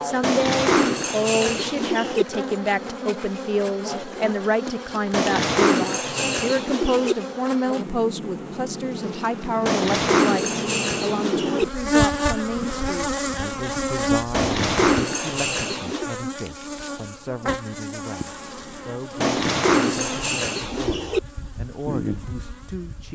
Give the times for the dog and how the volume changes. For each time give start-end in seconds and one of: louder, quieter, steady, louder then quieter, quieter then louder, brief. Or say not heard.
not heard.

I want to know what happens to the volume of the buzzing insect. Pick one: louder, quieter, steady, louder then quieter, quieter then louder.
louder then quieter.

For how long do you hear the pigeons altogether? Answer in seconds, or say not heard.
10 s.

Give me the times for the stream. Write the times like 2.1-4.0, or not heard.
not heard.